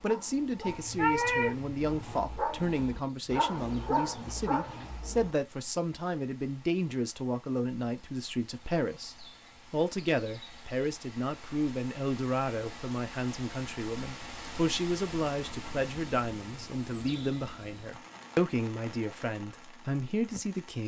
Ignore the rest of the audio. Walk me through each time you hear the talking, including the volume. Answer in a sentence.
You can hear the talking from 0.0 to 20.8 s, at a steady volume.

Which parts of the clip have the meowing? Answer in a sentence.
You can hear the meowing from 0.7 to 2.2 s.